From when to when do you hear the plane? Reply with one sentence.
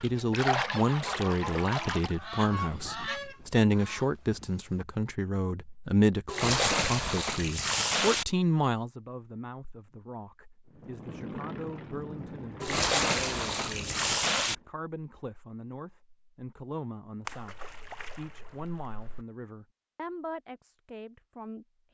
You can hear the plane from 10.7 to 14.7 s.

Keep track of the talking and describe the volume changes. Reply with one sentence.
The volume of the talking goes down.